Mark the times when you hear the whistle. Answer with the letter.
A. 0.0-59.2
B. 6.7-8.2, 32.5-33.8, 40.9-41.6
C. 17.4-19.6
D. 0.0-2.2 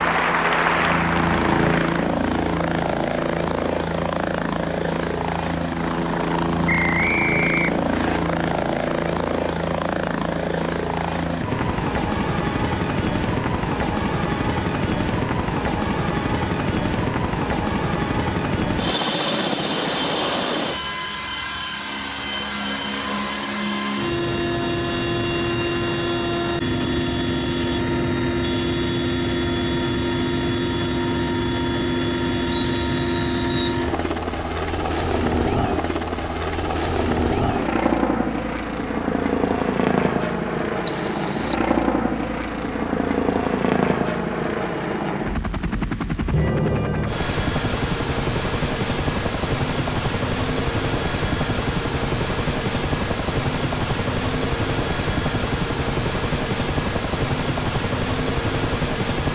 B.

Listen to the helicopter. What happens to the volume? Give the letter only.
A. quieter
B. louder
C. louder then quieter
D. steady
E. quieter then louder
D.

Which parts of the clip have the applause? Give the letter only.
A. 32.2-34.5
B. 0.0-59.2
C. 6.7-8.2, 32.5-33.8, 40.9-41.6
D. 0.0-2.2
D.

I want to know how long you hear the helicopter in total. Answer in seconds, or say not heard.
59 s.